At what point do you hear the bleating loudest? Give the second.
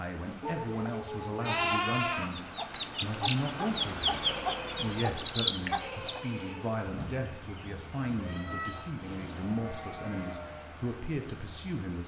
2 s.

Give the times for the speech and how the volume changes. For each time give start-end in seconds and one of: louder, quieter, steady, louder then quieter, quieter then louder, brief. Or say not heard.
0.0-2.4 brief
3.0-12.0 steady.